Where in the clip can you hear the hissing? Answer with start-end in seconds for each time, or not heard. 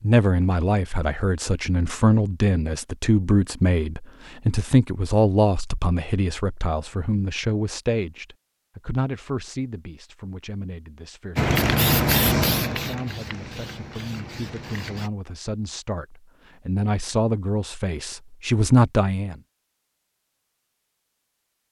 11.3-15.1.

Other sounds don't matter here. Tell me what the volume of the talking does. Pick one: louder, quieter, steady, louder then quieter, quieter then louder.
quieter then louder.